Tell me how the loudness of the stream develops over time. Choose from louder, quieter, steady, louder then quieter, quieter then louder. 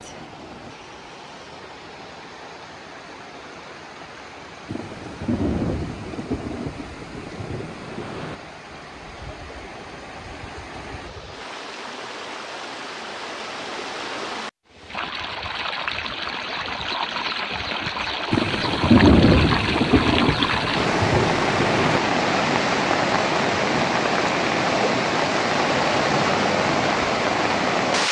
louder.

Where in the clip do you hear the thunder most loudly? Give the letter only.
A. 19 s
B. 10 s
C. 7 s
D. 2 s
A.